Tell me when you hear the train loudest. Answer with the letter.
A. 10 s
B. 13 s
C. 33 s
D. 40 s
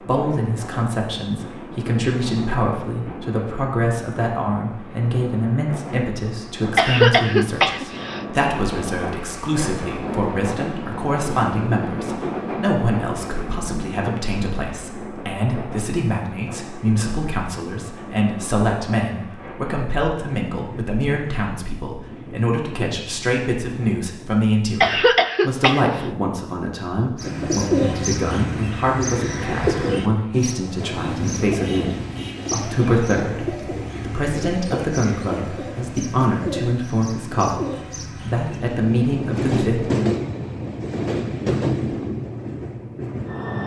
D.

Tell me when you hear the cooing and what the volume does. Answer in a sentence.
The cooing can be heard from 27.1 to 38.6 s, getting quieter.